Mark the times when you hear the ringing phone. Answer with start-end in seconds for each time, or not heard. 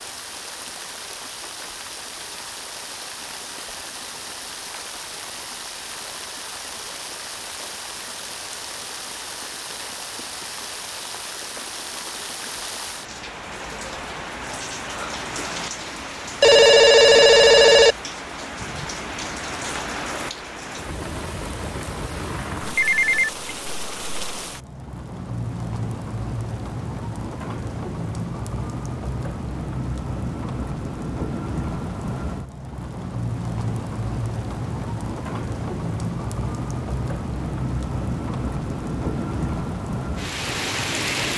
16.4-17.9, 22.8-23.3.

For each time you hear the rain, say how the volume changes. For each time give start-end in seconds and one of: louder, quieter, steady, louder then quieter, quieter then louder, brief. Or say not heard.
0.0-41.3 louder.